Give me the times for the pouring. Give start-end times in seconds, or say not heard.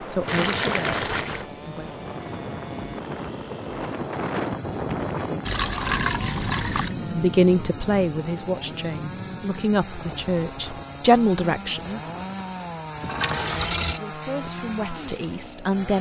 0.2-1.4, 5.5-7.0, 13.0-14.0.